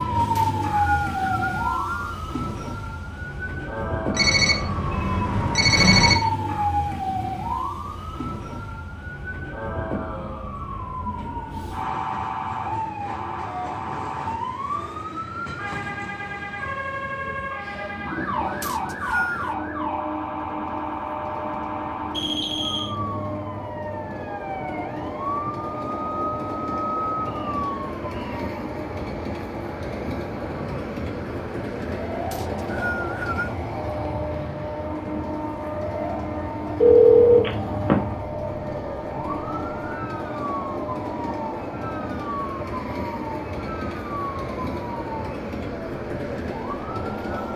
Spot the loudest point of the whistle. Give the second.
19 s.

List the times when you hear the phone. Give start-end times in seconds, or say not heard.
4.2-6.2, 22.1-22.9, 36.8-38.0.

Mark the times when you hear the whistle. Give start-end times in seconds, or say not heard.
0.3-2.1, 18.6-19.6, 32.3-33.5.